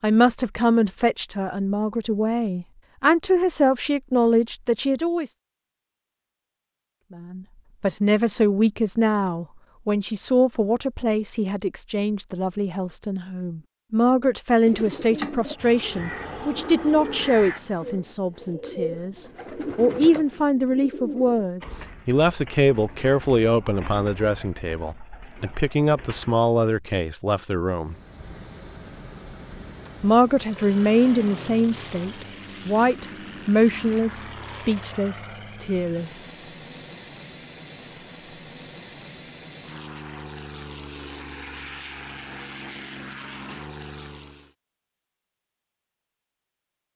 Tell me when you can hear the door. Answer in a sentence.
You can't hear the door here.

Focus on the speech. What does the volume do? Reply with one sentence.
The loudness of the speech stays about the same.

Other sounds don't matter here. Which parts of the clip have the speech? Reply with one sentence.
You can hear the speech from 0.0 to 5.3 s, from 7.1 to 27.9 s and from 30.0 to 36.2 s.